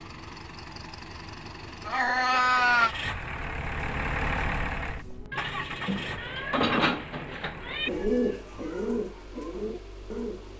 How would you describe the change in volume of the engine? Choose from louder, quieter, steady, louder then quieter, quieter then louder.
louder then quieter.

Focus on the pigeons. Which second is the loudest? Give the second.
8 s.